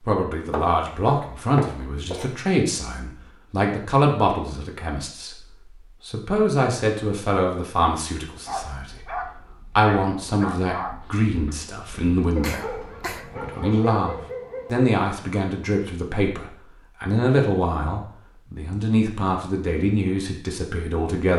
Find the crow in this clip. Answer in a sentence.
The crow can't be heard in this clip.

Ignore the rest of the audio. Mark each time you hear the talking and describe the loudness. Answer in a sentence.
You can hear the talking from 0.0 to 21.3 s, at a steady volume.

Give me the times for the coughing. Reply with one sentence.
You can hear the coughing from 12.4 to 13.3 s.